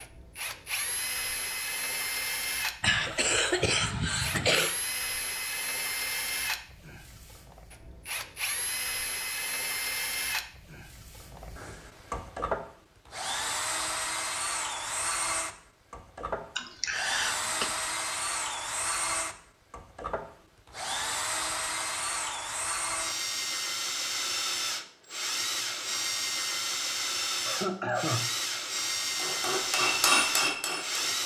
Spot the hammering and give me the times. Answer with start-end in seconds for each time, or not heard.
29.1-31.2.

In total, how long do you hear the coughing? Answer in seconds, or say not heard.
4 s.